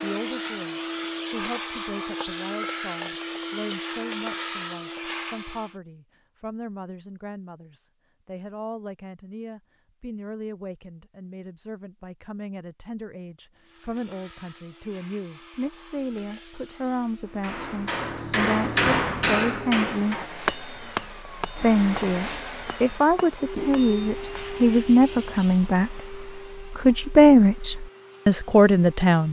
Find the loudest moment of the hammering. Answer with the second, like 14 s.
19 s.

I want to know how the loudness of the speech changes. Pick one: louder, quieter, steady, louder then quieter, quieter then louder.
louder.